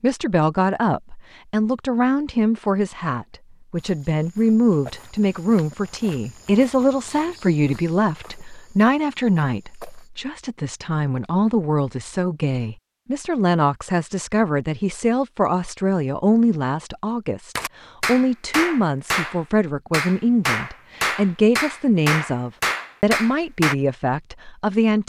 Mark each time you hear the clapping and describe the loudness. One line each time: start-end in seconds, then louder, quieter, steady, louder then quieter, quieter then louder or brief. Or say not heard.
17.6-23.8 steady.